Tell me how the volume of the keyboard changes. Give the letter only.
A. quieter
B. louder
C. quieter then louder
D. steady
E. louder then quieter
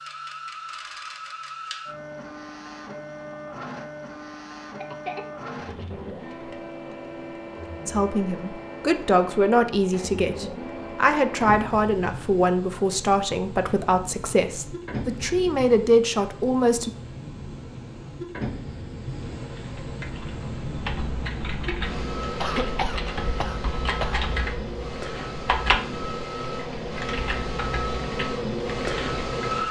E.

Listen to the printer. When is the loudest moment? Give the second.
29 s.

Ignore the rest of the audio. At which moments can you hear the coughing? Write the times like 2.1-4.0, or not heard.
4.8-6.0, 22.4-24.2.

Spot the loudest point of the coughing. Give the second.
23 s.